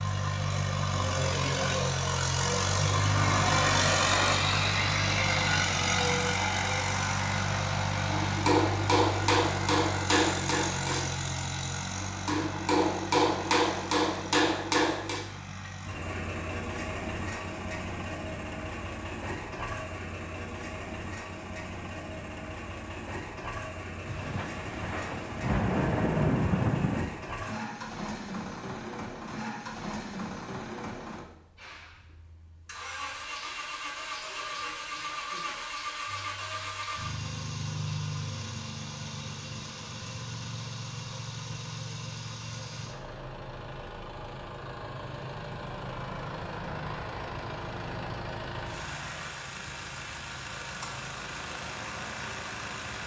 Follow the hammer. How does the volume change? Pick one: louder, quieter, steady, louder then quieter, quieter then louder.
quieter then louder.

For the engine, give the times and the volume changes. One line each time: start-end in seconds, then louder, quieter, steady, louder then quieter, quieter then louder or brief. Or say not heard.
0.0-53.0 quieter.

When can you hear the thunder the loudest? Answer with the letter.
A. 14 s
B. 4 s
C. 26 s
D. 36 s
C.